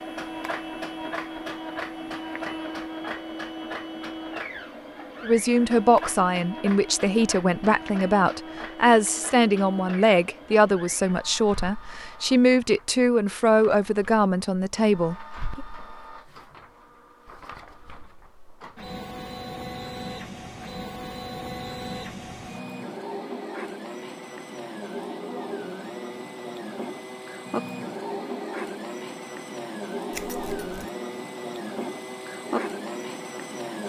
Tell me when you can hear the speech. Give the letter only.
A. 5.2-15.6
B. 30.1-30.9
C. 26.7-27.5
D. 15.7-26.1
A.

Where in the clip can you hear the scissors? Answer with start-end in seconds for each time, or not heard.
30.1-30.9.